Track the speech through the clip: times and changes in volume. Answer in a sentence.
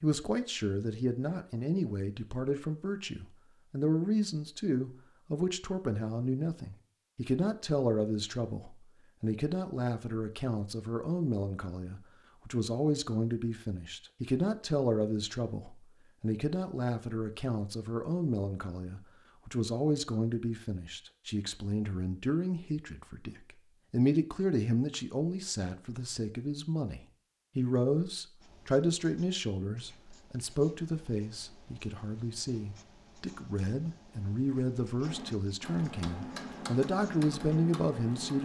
You can hear the speech from 0.0 to 38.4 s, at a steady volume.